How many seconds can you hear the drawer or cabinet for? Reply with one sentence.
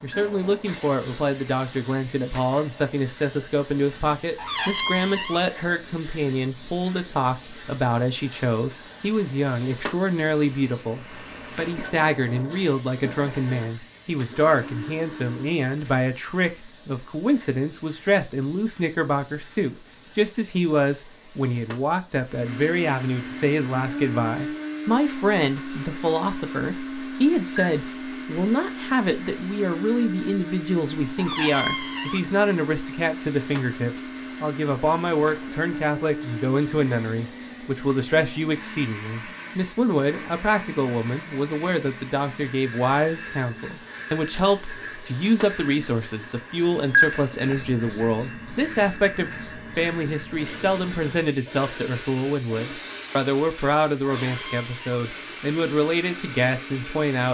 The drawer or cabinet can be heard for 3 seconds in total.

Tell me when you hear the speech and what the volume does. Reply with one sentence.
You can hear the speech from 0.0 to 57.2 s, at a steady volume.